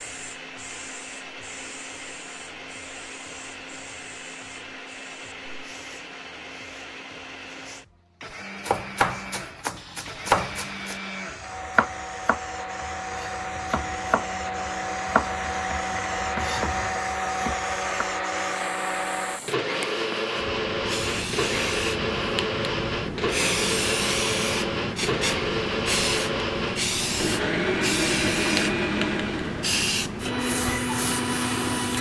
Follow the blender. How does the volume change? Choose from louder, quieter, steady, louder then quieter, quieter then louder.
louder.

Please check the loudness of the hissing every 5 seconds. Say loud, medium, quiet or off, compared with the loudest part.
quiet, quiet, quiet, quiet, loud, loud, loud.